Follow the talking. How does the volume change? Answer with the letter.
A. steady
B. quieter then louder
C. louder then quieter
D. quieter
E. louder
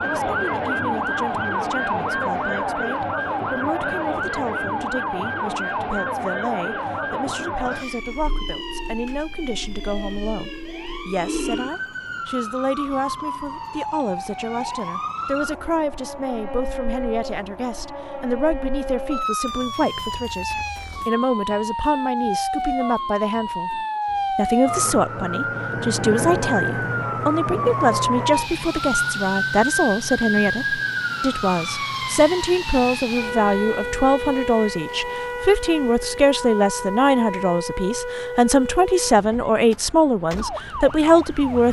E.